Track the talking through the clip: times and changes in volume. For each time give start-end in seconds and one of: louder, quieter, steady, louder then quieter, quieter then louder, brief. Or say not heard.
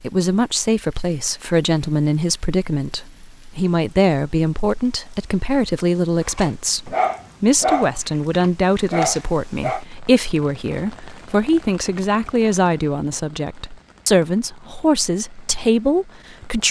0.0-16.6 steady.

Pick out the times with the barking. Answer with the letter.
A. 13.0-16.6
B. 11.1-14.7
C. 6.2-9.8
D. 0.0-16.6
C.